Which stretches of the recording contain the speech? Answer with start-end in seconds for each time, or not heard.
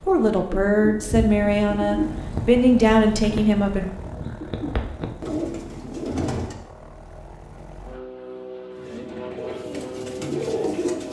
0.0-3.9.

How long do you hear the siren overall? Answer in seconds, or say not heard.
not heard.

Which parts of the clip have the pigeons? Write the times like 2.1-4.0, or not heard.
0.0-6.6, 8.8-11.0.